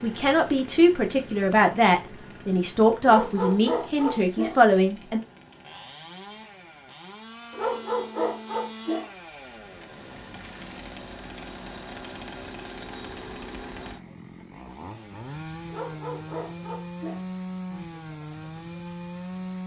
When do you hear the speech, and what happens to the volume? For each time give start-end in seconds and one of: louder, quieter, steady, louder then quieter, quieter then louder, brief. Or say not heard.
0.0-5.2 steady.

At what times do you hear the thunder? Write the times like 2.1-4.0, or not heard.
not heard.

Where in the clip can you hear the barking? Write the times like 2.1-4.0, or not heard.
3.0-4.5, 7.5-9.1, 15.7-17.2.